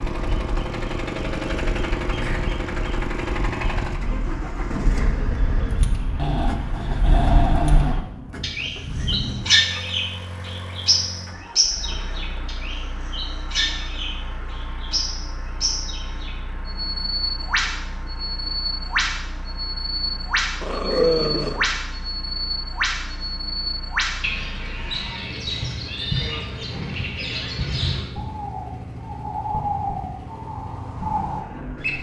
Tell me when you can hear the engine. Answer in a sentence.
You can hear the engine from 0.0 to 31.9 s.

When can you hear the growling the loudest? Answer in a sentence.
The volume of the growling peaks at 21 seconds.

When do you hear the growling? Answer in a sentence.
You can hear the growling from 6.2 to 8.0 s and from 20.6 to 21.6 s.